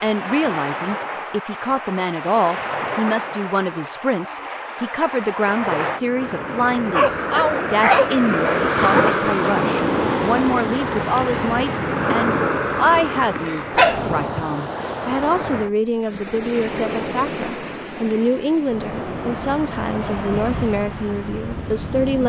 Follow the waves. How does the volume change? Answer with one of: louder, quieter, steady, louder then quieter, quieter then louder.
louder then quieter.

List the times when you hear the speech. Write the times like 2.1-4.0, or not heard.
0.0-22.2.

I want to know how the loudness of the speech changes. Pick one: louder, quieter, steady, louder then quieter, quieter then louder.
steady.